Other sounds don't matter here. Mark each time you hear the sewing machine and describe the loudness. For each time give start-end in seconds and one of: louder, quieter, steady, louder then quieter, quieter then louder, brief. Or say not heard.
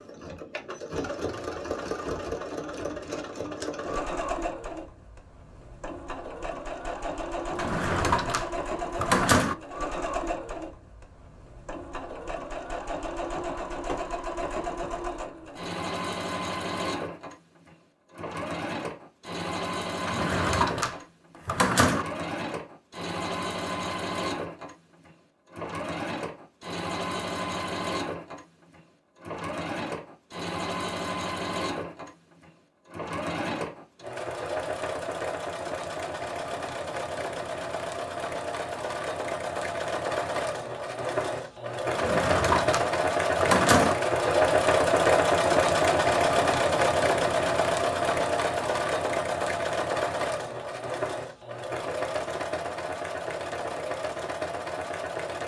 0.0-55.4 louder.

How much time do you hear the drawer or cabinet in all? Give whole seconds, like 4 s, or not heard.
6 s.